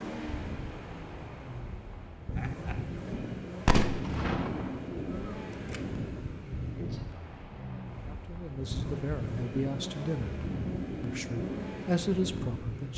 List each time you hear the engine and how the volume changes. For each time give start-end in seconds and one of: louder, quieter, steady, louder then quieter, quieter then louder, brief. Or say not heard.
0.0-12.9 steady.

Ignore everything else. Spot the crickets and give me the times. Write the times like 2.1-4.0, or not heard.
not heard.